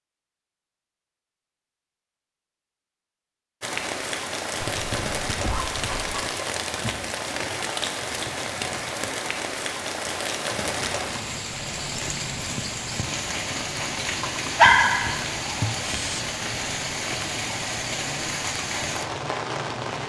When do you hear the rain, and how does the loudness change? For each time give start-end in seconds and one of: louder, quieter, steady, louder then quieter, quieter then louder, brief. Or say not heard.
3.6-20.0 steady.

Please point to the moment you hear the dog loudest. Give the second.
15 s.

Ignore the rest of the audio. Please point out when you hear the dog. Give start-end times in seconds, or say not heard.
4.6-6.2, 14.2-16.2.